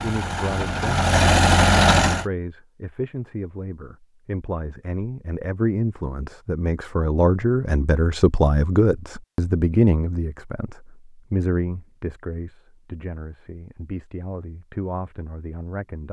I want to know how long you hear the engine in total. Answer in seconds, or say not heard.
2 s.